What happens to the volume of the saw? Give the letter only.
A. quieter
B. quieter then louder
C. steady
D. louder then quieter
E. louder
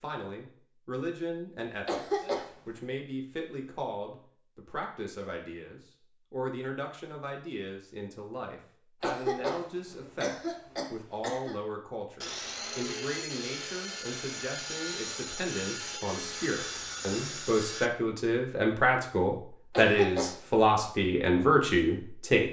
C.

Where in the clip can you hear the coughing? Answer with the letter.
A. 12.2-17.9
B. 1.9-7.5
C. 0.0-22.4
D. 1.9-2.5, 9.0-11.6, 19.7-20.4
D.